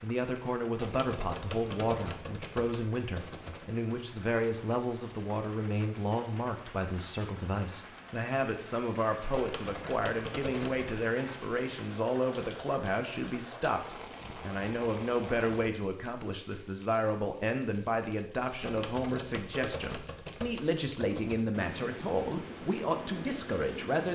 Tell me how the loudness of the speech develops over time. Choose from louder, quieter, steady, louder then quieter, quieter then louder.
steady.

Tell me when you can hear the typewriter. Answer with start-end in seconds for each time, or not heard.
0.8-3.7, 9.3-11.1, 18.6-21.4.